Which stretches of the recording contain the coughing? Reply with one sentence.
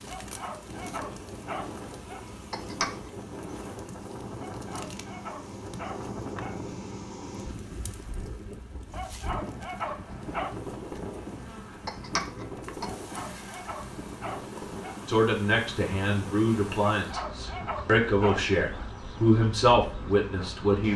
The coughing can be heard from 2.5 to 3.1 s and from 11.8 to 12.9 s.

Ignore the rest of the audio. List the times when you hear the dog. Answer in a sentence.
The dog can be heard from 0.1 to 2.2 s, from 4.3 to 6.5 s, from 8.9 to 10.6 s, from 12.8 to 14.9 s and from 16.9 to 18.4 s.